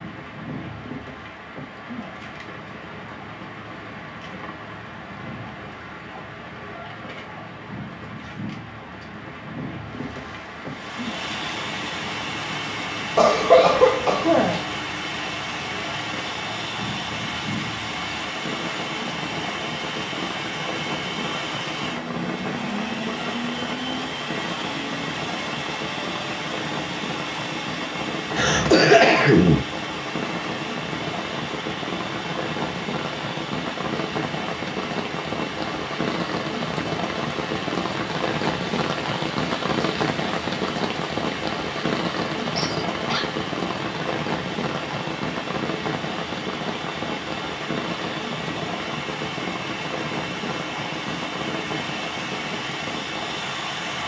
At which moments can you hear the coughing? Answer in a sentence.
The coughing can be heard from 13.2 to 14.6 s, from 28.4 to 29.6 s and from 42.5 to 43.2 s.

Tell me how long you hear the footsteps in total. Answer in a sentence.
You can't hear the footsteps here.